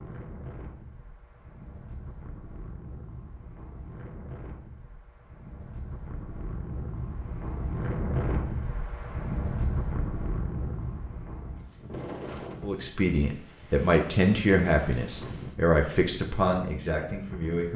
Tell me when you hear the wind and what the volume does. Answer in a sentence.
The wind can be heard from 0.0 to 17.6 s, getting louder then quieter.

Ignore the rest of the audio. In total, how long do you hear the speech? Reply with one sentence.
You can hear the speech for 5 seconds altogether.